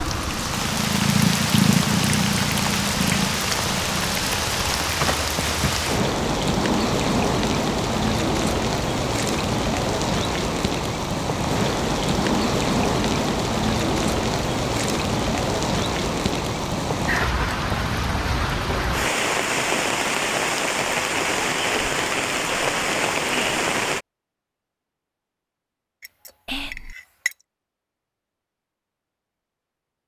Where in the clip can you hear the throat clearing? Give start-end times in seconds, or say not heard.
not heard.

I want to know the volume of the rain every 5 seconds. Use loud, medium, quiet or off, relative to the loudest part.
loud, loud, loud, loud, loud, off.